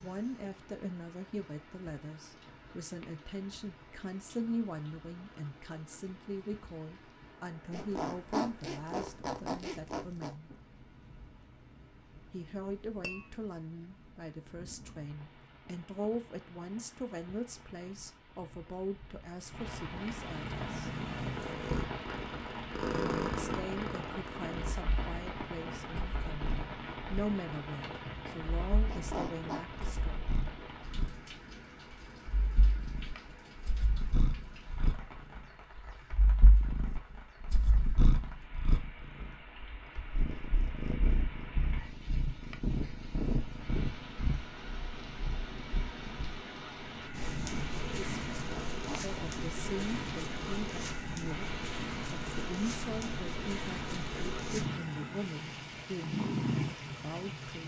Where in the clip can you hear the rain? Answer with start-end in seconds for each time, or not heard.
0.0-57.6.